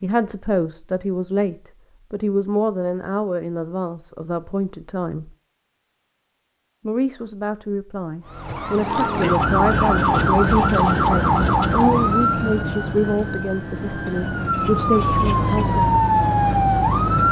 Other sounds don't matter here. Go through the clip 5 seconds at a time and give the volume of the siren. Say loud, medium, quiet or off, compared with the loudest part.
off, loud, loud, loud.